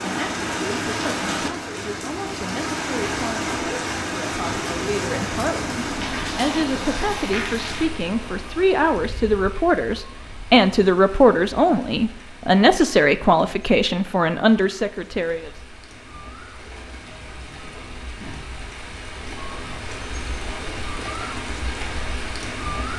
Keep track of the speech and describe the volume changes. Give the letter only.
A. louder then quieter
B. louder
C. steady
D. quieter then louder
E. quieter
B.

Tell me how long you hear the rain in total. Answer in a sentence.
You can hear the rain for 23 seconds altogether.